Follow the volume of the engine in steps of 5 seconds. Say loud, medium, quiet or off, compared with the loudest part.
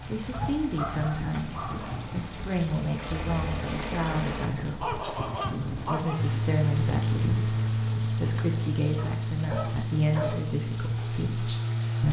medium, loud, loud.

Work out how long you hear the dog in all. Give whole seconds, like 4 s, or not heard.
5 s.